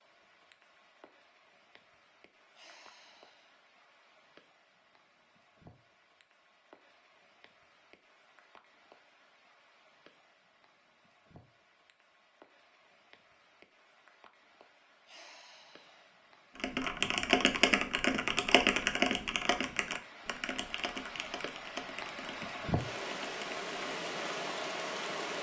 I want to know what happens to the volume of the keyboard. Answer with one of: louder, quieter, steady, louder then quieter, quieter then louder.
quieter.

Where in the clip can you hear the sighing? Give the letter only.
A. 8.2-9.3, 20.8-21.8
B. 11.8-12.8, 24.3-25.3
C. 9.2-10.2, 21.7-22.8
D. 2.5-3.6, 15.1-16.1
D.